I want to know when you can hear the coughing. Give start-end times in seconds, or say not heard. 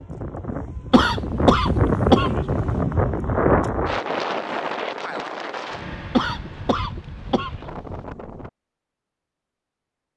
0.9-2.8, 6.1-8.0.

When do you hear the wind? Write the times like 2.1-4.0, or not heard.
0.0-8.5.